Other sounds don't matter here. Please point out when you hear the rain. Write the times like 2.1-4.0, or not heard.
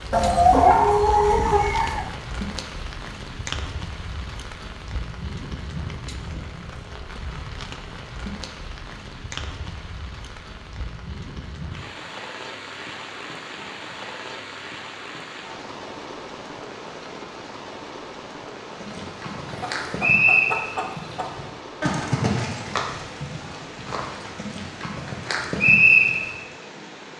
0.0-27.1.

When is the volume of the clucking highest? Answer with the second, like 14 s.
1 s.